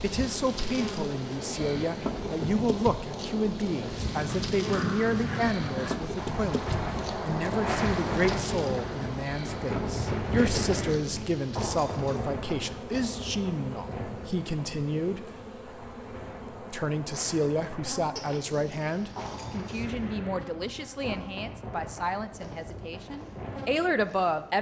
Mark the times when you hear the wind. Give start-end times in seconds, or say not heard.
0.0-24.5.